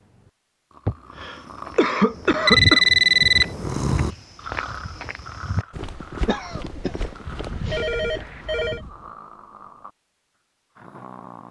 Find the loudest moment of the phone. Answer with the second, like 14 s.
3 s.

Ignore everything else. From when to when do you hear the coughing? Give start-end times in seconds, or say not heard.
0.8-2.9, 6.2-7.9.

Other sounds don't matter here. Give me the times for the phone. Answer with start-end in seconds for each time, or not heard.
2.5-3.5, 7.2-8.8.